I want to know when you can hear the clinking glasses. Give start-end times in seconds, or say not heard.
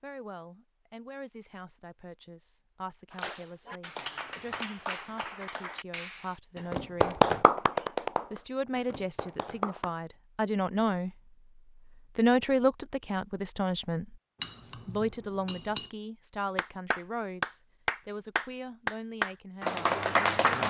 14.4-15.9.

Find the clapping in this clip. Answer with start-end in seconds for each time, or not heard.
3.1-9.9, 16.6-20.6.